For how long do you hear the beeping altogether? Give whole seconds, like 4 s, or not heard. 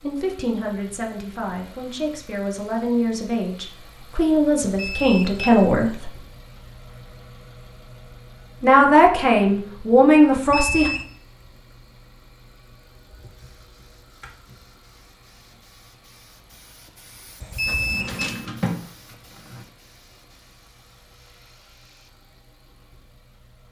3 s.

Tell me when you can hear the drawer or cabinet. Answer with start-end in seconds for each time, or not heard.
17.6-19.6.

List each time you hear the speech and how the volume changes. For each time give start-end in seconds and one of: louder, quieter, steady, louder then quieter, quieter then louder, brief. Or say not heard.
0.0-6.1 louder
8.6-10.9 brief.